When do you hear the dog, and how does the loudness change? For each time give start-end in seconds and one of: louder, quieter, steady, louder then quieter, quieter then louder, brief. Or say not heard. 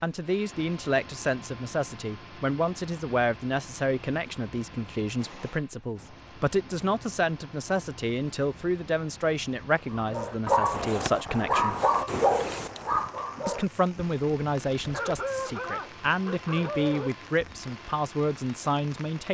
9.9-17.7 quieter.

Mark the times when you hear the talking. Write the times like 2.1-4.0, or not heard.
0.0-11.8, 13.4-19.3.